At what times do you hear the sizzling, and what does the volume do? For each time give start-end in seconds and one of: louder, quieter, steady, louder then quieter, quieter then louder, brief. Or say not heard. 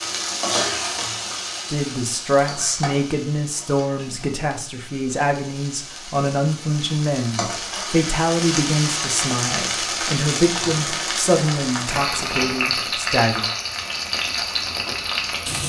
0.0-15.6 quieter then louder.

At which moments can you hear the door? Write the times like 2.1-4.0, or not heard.
not heard.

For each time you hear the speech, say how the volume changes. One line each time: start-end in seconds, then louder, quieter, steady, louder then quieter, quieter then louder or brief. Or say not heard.
1.7-13.5 steady.